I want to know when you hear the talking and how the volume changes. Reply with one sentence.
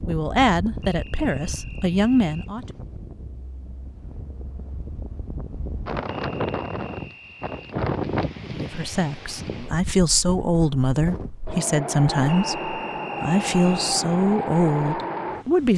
The talking can be heard briefly from 0.1 to 2.6 s; and from 8.4 to 15.7 s, at a steady volume.